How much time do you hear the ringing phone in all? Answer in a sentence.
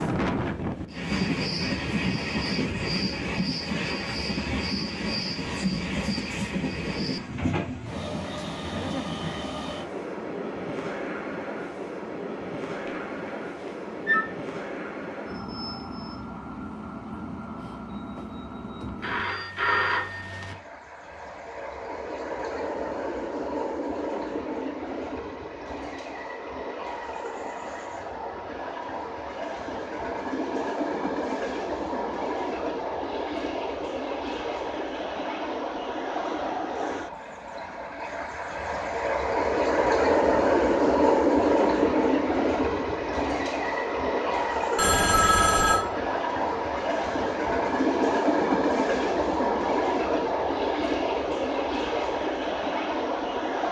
You can hear the ringing phone for 4 seconds altogether.